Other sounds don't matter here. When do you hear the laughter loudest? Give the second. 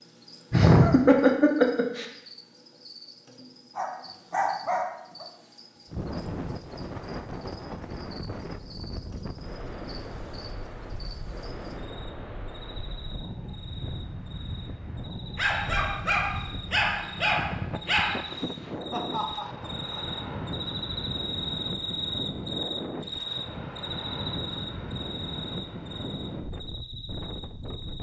1 s.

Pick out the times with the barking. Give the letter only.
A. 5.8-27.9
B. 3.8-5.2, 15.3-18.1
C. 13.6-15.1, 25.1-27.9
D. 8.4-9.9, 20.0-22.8
B.